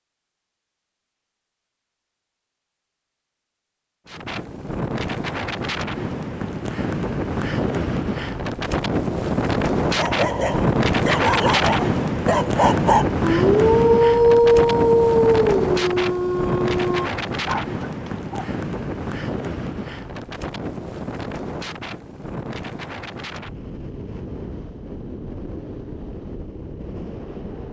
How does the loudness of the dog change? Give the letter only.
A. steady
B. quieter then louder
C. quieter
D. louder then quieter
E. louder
D.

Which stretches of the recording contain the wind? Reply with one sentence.
The wind can be heard from 4.0 to 27.6 s.